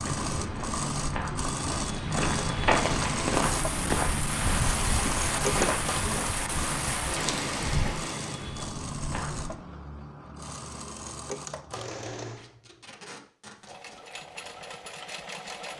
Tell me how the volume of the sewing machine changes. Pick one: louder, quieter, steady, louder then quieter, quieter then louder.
quieter.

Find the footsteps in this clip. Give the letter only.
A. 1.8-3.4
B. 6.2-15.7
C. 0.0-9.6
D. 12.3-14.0
C.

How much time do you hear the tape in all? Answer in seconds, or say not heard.
2 s.